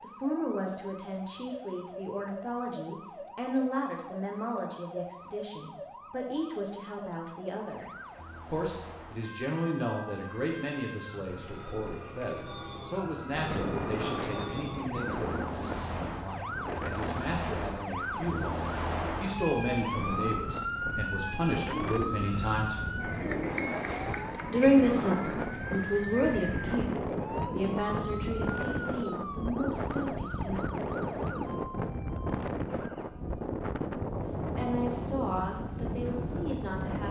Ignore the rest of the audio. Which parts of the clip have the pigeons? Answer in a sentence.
You can hear the pigeons from 11.2 to 12.9 s and from 21.7 to 24.1 s.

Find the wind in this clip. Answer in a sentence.
You can hear the wind from 13.2 to 37.0 s.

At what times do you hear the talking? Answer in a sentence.
You can hear the talking from 0.0 to 22.8 s, from 24.4 to 30.6 s and from 34.5 to 37.0 s.